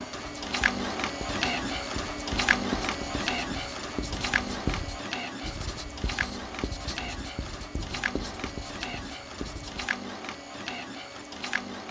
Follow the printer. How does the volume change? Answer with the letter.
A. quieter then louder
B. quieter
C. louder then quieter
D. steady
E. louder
B.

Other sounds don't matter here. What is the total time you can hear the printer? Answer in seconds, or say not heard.
12 s.